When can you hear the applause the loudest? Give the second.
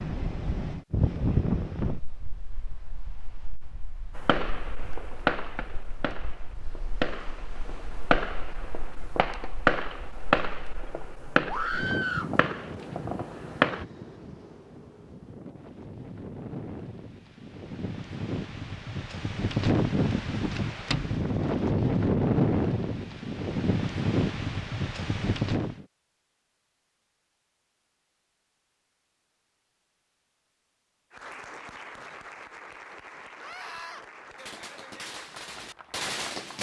32 s.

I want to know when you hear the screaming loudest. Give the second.
12 s.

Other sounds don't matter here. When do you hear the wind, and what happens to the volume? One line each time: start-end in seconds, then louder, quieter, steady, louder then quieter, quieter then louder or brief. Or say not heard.
0.0-25.9 quieter then louder.